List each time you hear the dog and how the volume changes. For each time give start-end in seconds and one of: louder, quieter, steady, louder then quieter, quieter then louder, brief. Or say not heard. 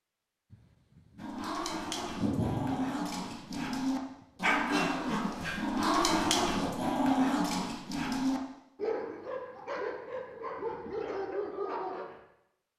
1.1-12.2 louder then quieter.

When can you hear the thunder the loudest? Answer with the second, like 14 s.
2 s.